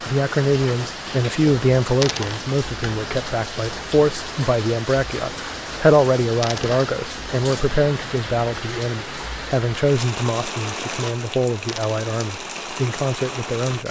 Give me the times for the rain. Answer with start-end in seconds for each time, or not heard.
0.0-13.8.